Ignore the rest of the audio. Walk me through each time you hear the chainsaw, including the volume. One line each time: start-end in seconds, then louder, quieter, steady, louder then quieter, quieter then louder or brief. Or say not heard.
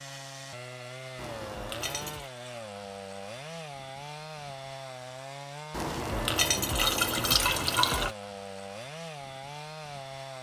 0.0-10.3 steady.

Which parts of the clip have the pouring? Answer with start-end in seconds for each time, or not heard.
1.1-2.3, 5.7-8.2.